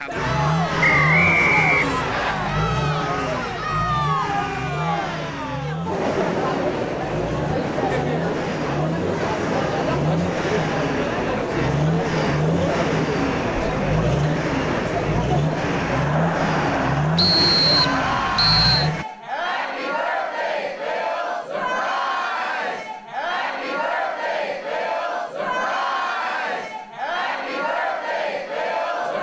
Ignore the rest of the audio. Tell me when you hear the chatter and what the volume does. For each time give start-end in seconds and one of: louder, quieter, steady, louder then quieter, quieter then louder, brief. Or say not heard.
0.1-29.1 steady.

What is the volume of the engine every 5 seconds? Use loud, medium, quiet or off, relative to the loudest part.
loud, medium, loud, loud, off, off.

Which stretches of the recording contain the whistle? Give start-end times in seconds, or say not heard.
0.8-2.4, 17.1-18.9.